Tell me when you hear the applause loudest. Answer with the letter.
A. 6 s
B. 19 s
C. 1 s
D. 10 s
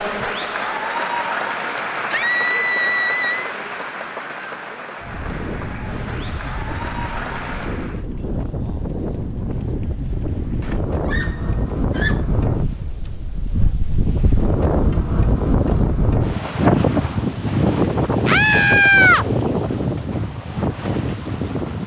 C.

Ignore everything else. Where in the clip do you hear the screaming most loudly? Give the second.
19 s.